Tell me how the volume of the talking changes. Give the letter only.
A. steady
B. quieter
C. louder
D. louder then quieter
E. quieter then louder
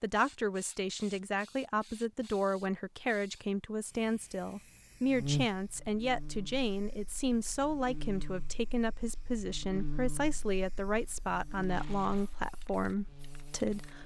A.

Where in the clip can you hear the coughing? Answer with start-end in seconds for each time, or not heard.
not heard.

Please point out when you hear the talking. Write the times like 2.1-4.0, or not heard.
0.0-14.0.